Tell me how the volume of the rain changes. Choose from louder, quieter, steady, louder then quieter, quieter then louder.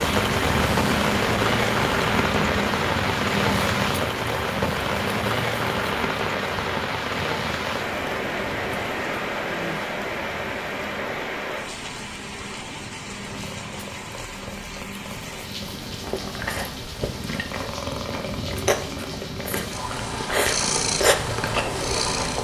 quieter.